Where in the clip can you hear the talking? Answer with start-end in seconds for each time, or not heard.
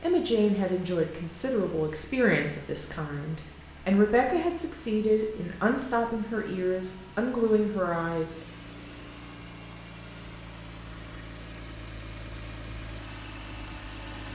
0.0-8.4.